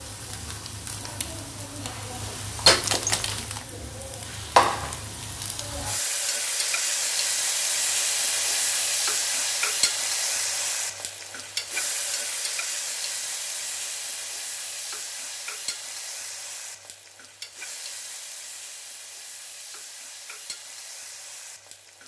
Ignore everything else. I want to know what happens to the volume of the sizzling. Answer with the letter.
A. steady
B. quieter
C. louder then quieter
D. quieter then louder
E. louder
B.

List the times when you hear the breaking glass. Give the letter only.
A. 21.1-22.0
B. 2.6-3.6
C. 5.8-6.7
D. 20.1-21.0
B.